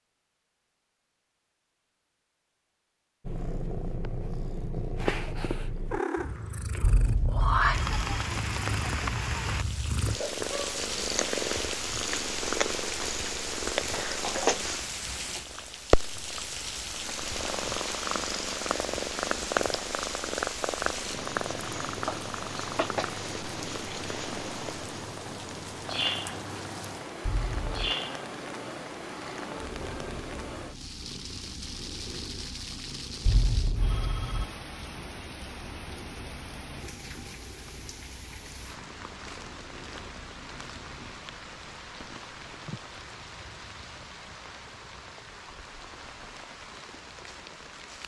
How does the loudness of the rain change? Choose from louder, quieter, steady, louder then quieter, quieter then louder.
quieter.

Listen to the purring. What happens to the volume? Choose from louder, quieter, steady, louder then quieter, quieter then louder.
quieter.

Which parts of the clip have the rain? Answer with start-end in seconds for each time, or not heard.
7.7-48.0.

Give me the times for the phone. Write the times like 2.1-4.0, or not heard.
6.8-8.3, 27.2-27.8, 33.2-34.5.